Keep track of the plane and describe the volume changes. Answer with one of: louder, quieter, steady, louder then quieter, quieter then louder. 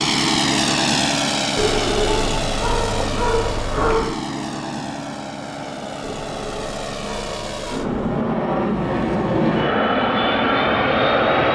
quieter then louder.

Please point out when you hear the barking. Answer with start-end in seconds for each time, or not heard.
1.6-4.2, 6.0-7.9.